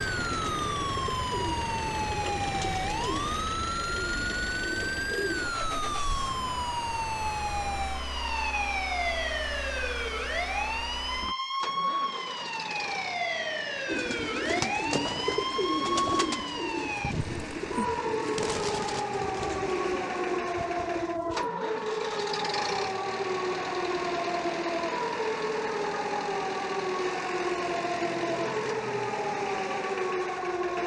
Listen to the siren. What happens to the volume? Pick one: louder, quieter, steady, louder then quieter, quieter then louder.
steady.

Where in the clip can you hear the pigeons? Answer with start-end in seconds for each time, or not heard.
0.0-6.0, 13.8-21.5.